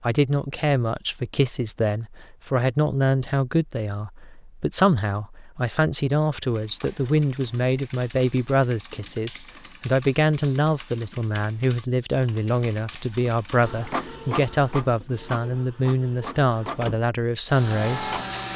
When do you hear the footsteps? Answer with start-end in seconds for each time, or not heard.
not heard.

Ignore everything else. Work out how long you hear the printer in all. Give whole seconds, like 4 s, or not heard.
5 s.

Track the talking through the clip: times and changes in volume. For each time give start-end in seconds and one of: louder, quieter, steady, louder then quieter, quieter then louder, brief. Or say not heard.
0.0-18.1 steady.